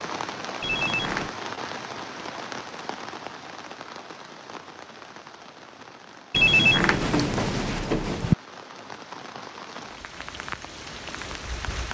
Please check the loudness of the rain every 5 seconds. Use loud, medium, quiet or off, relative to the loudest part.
loud, medium, loud.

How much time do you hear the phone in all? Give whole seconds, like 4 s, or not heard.
3 s.